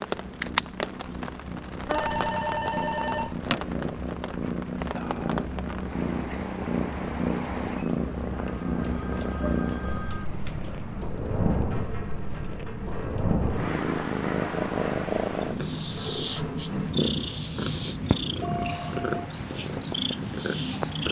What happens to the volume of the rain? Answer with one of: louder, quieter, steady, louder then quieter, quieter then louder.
quieter.